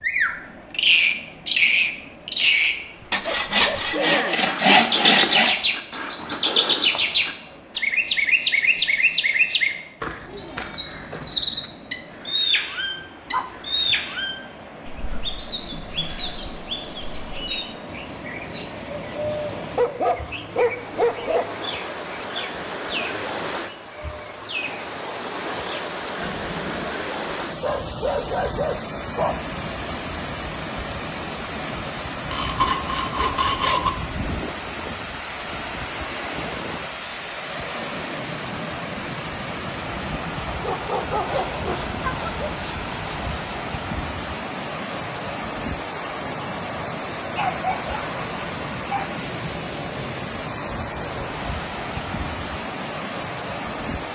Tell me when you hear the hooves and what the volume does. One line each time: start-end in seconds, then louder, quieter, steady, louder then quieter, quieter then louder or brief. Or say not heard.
not heard.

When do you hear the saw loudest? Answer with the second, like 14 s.
5 s.